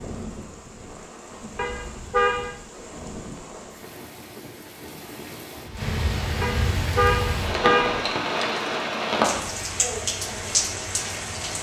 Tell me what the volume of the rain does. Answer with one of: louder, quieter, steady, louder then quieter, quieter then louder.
louder.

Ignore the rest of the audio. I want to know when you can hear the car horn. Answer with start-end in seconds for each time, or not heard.
1.6-2.5, 6.4-8.1.